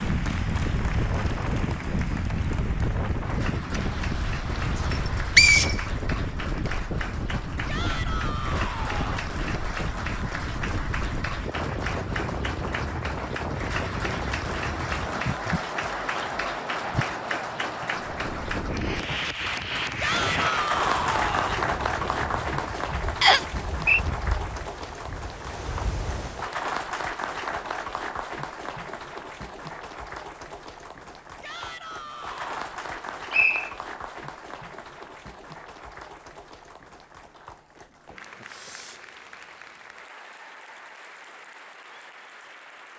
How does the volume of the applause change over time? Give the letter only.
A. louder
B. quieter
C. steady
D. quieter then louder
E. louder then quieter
E.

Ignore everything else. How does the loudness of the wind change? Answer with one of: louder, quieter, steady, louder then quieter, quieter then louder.
quieter.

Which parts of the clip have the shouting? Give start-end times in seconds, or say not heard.
7.7-9.3, 20.0-21.6, 31.4-32.5.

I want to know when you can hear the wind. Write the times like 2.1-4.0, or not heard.
0.0-26.5.